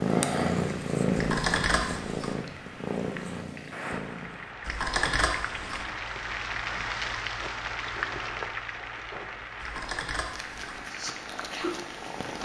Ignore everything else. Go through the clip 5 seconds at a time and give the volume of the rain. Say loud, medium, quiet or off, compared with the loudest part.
medium, loud, medium.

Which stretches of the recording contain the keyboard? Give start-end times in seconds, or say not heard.
1.1-2.4, 4.7-5.8, 9.6-10.8.